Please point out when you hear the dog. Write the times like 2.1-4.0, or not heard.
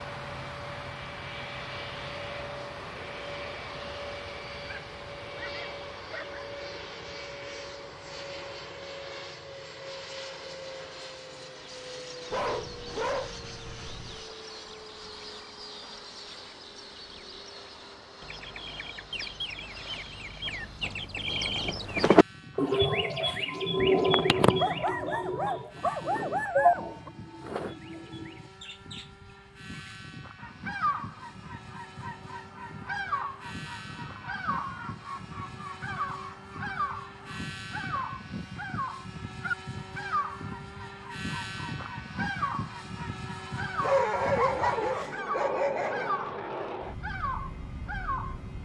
4.7-6.5, 12.3-14.3, 24.6-27.1, 43.8-46.1.